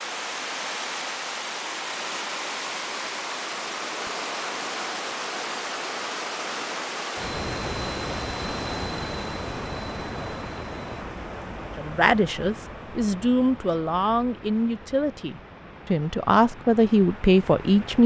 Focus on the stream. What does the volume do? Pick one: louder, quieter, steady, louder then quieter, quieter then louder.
quieter.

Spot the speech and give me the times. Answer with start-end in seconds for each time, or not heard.
11.8-18.0.